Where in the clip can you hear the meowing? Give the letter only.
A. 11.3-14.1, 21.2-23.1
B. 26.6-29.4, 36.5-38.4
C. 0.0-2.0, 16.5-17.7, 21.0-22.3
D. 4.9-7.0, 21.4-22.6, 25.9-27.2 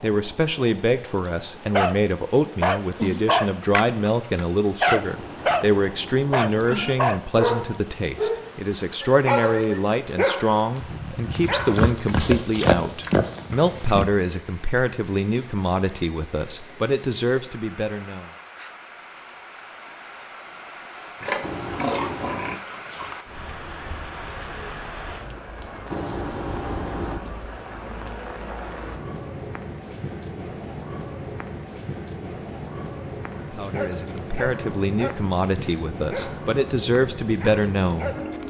D.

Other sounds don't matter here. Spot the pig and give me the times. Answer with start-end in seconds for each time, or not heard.
11.3-14.1, 21.2-23.1.